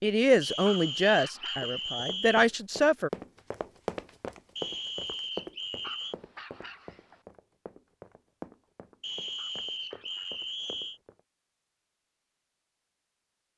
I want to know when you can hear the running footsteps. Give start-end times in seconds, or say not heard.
1.6-11.2.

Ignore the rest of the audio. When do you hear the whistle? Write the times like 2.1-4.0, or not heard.
0.4-2.5, 4.5-6.2, 9.0-11.0.